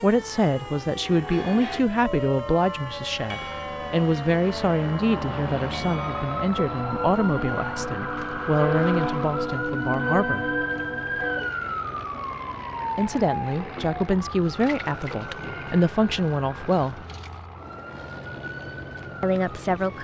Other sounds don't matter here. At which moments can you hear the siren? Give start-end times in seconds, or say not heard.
0.0-19.9.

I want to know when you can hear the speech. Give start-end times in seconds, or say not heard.
0.0-10.4, 12.9-17.1, 19.2-19.9.